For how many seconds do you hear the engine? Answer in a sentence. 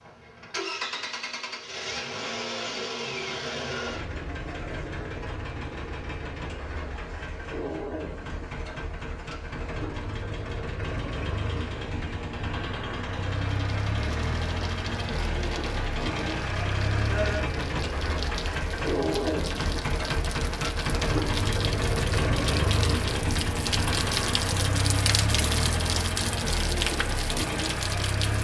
You can hear the engine for 28 seconds altogether.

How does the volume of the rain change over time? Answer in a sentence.
The volume of the rain goes up.